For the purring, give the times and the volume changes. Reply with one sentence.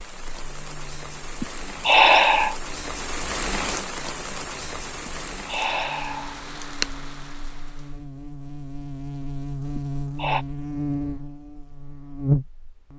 You can't hear the purring here.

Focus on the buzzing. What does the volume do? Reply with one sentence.
The volume of the buzzing goes up.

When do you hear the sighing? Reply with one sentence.
The sighing can be heard from 1.4 to 2.5 s, from 5.0 to 6.8 s and from 9.8 to 10.4 s.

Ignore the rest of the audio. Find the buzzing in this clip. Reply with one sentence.
You can hear the buzzing from 0.0 to 12.9 s.